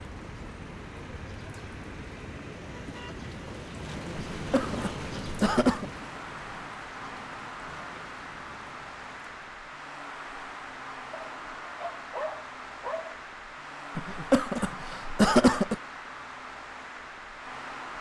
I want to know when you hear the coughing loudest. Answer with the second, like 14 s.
15 s.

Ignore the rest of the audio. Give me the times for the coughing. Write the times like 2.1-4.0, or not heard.
4.3-5.8, 13.9-15.8.